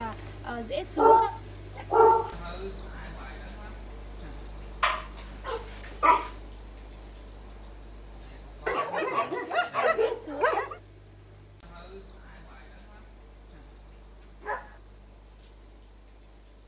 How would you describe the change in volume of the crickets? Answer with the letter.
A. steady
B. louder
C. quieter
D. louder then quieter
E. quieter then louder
C.